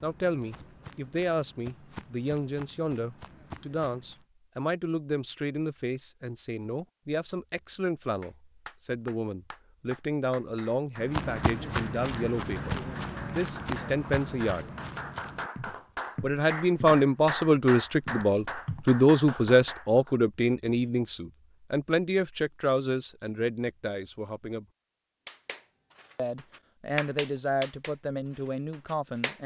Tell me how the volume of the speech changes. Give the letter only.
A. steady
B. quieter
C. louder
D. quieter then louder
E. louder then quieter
E.